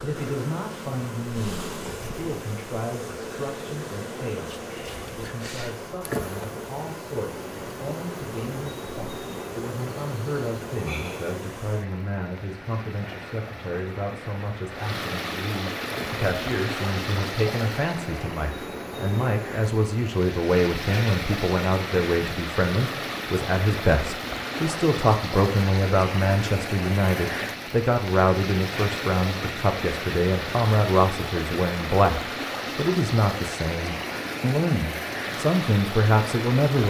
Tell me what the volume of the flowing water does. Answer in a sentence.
The volume of the flowing water goes up.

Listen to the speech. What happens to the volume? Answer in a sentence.
The volume of the speech goes up.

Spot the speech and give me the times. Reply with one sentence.
The speech can be heard from 0.0 to 36.8 s.